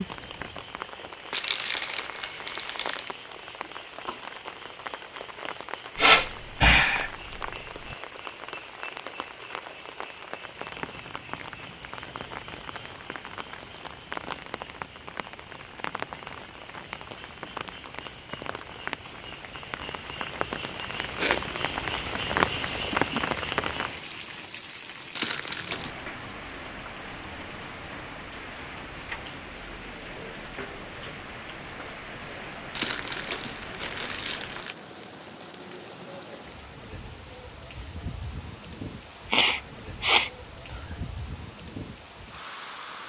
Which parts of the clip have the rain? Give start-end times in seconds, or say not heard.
0.0-43.0.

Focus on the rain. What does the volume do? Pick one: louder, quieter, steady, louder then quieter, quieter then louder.
louder then quieter.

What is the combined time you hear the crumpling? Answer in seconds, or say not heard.
5 s.